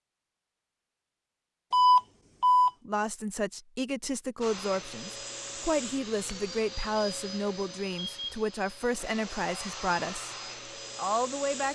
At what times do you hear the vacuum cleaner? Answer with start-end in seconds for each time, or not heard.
4.4-11.6.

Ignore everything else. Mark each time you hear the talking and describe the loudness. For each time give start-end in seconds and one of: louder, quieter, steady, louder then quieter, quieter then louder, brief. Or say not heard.
2.9-10.3 steady
10.9-11.6 brief.